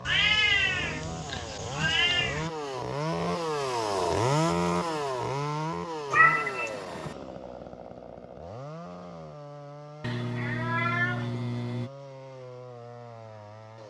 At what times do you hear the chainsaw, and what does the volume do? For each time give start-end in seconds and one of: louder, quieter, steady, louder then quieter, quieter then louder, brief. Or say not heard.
0.0-13.8 louder then quieter.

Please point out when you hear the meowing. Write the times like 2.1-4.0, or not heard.
0.1-2.5, 6.1-7.2, 10.0-11.9.